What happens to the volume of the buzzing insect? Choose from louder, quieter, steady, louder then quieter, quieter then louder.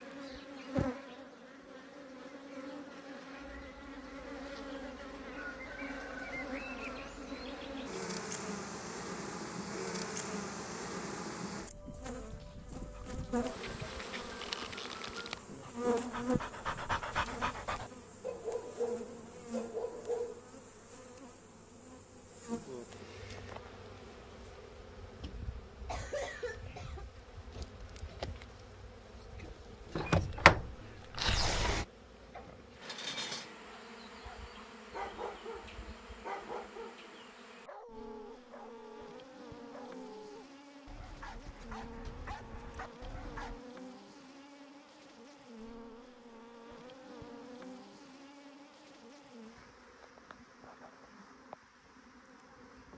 quieter.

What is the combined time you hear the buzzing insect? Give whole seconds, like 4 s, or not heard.
53 s.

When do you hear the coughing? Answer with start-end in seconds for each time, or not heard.
25.9-27.1.